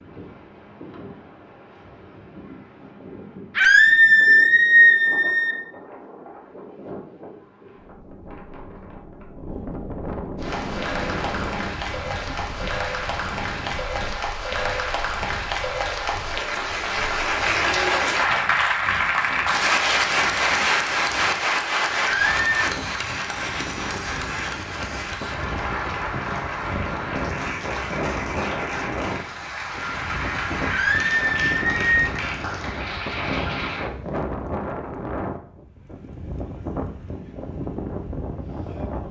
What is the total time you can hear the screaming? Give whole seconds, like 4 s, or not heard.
4 s.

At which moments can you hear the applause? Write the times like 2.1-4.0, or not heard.
10.3-33.9.